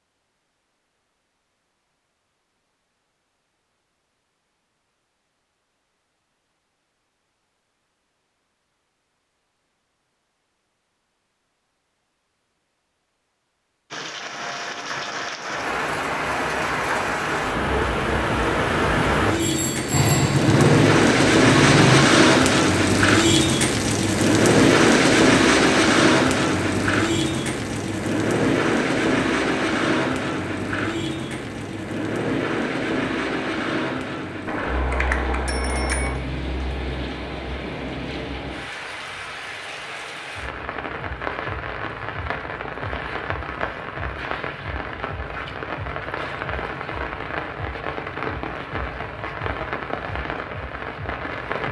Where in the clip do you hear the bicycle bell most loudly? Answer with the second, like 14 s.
35 s.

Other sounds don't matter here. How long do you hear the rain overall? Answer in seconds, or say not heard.
38 s.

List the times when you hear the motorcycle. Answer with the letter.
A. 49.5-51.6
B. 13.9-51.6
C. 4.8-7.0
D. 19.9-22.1
D.